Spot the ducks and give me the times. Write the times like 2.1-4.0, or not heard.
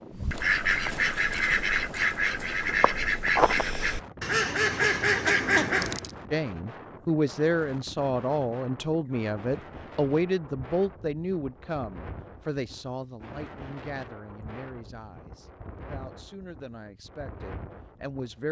0.1-6.1.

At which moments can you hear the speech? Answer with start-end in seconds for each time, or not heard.
6.3-18.4.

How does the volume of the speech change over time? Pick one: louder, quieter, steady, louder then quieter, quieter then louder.
quieter.